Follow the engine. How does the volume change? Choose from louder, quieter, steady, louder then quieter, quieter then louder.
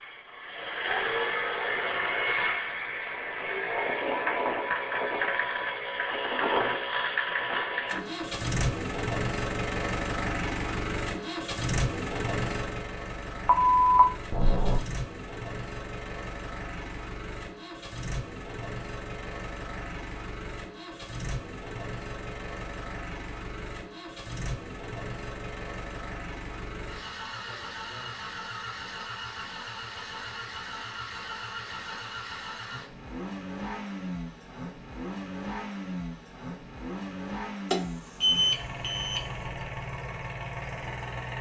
quieter.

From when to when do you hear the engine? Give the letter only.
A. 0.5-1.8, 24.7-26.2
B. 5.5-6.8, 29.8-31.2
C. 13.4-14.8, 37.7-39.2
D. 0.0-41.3
D.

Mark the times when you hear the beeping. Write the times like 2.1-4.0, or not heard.
13.4-14.8, 37.7-39.2.